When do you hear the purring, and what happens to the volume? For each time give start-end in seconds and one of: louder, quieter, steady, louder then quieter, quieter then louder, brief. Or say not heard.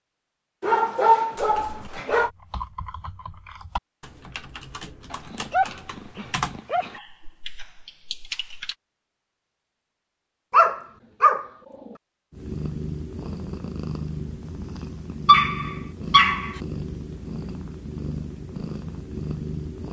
12.3-19.8 steady.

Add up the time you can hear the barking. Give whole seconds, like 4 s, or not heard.
6 s.